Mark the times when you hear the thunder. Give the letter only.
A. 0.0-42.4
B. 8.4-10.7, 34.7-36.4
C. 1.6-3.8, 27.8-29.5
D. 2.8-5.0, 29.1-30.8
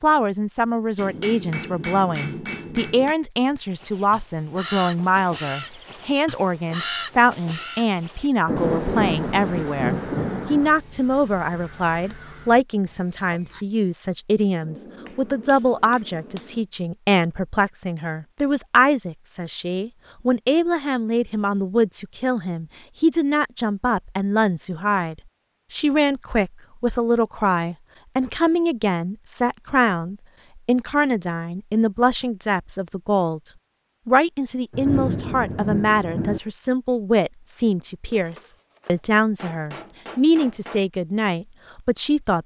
B.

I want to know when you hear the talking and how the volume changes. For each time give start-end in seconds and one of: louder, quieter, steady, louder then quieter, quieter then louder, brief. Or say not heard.
0.0-42.4 steady.